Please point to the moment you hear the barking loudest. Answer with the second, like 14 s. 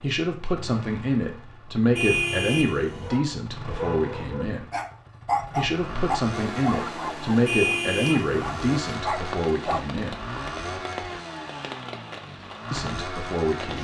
5 s.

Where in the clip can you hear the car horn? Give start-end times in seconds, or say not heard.
1.9-3.2, 7.5-8.2.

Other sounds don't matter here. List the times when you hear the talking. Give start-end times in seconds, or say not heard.
0.0-4.7, 5.5-10.2, 12.7-13.8.